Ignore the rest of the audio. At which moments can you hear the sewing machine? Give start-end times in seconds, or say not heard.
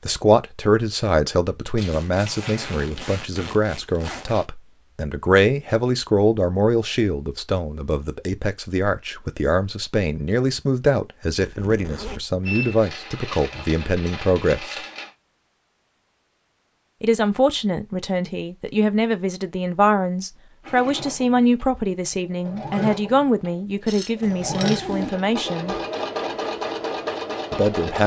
20.6-28.0.